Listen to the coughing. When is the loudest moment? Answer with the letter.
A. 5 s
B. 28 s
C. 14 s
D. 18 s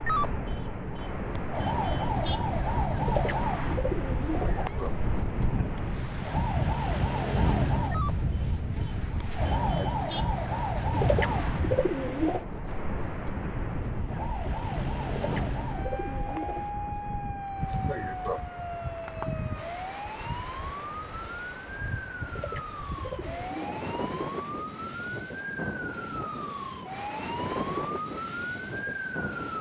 D.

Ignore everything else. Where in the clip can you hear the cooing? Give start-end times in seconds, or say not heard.
3.0-4.7, 10.9-12.4, 15.1-16.7, 22.2-23.9.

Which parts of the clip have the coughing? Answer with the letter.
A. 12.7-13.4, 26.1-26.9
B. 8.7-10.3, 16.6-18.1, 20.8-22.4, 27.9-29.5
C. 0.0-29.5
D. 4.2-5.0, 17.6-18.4
D.